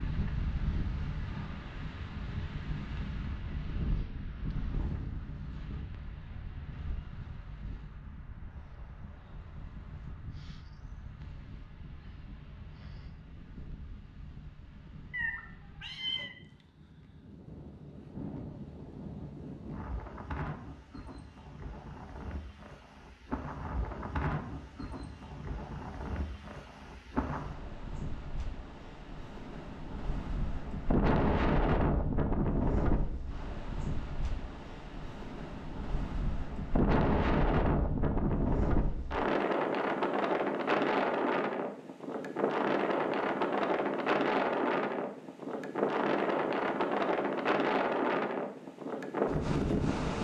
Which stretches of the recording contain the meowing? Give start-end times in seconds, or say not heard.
15.1-16.3.